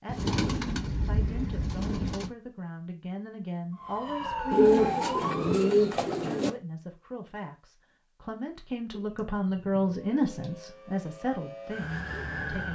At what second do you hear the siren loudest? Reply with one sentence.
The loudest moment of the siren is at 5 seconds.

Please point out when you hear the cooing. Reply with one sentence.
The cooing can be heard from 0.1 to 2.3 s, from 4.5 to 6.5 s and from 8.9 to 10.5 s.